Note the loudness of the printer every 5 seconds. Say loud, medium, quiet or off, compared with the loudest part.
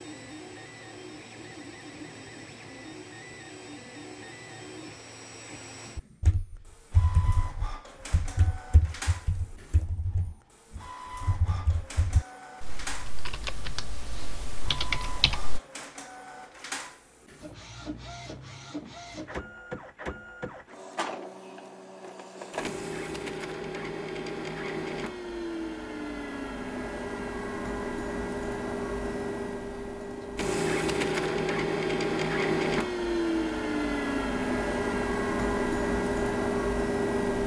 quiet, quiet, quiet, quiet, medium, medium, loud, loud.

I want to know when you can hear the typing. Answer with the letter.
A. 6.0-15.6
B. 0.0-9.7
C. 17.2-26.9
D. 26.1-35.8
A.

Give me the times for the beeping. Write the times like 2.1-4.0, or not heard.
not heard.